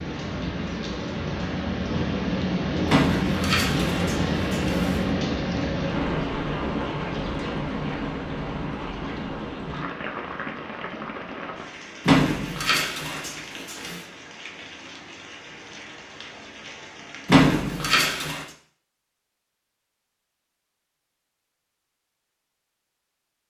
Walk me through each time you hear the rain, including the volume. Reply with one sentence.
You can hear the rain from 0.0 to 17.5 s, getting quieter.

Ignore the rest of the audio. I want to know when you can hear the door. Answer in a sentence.
The door can be heard from 2.9 to 5.0 s, from 12.1 to 14.0 s and from 17.2 to 18.4 s.